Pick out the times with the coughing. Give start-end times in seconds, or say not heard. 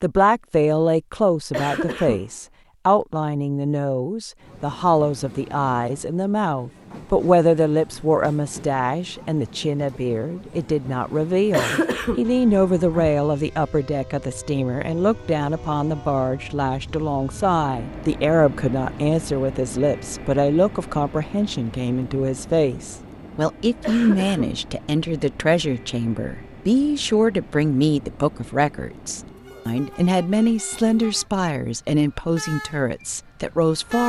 1.5-2.3, 11.5-13.2, 23.8-24.6.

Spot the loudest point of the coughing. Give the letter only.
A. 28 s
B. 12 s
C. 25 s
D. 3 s
B.